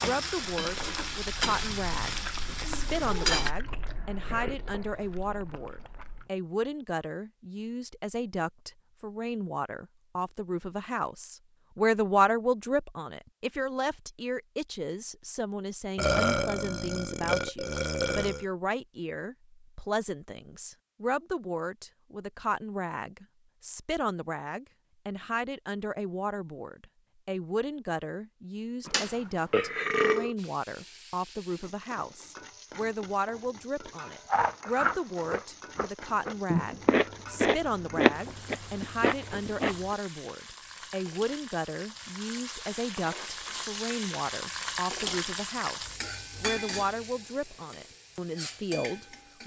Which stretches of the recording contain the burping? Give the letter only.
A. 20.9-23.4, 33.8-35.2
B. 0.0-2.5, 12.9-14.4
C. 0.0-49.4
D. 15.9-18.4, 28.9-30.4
D.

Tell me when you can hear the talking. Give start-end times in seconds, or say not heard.
0.0-49.4.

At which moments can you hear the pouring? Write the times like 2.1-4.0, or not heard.
not heard.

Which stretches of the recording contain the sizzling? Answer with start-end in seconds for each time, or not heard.
0.0-3.5, 30.4-49.4.